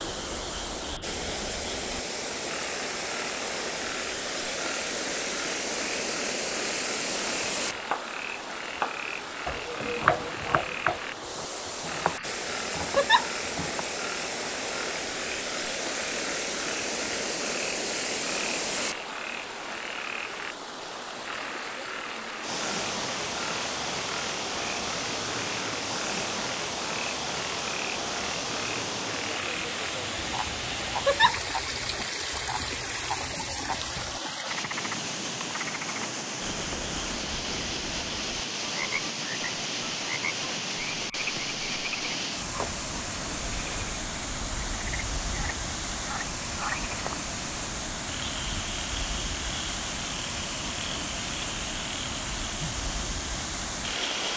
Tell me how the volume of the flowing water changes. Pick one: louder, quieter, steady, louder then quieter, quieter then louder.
steady.